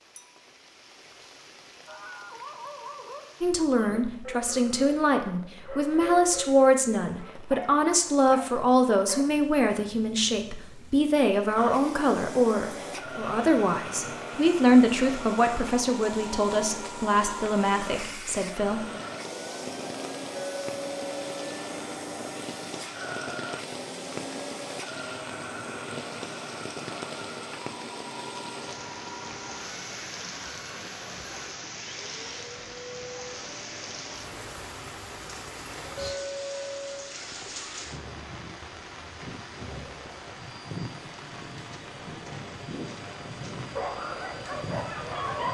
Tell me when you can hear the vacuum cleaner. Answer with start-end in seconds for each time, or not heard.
11.6-45.4.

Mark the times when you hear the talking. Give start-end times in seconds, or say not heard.
3.4-18.9.